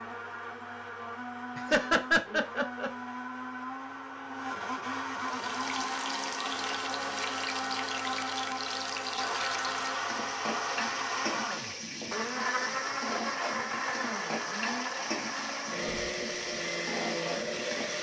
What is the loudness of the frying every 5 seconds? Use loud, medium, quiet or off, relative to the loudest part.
off, loud, loud, loud.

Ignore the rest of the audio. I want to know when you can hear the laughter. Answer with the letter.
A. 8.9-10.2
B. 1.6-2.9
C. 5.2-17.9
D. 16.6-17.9
B.